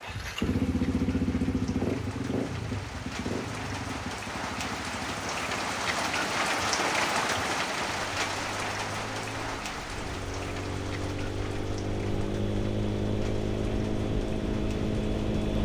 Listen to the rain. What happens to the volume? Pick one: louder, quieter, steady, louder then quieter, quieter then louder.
louder then quieter.